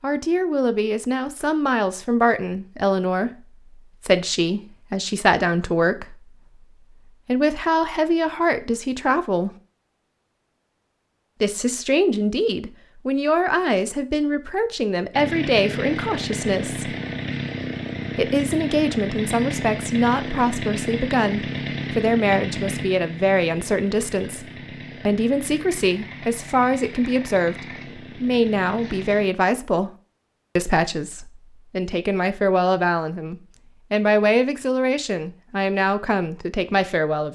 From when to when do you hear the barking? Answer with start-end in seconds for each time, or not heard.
not heard.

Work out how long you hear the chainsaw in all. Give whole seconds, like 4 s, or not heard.
14 s.